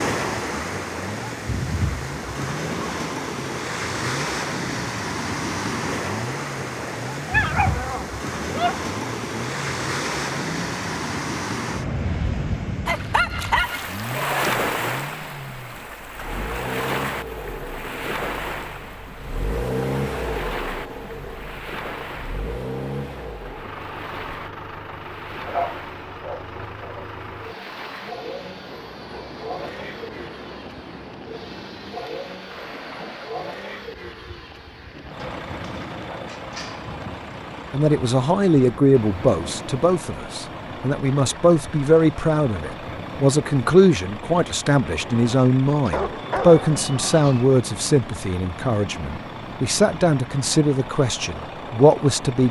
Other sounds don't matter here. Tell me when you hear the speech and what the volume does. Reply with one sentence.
The speech can be heard from 37.7 to 52.4 s, at a steady volume.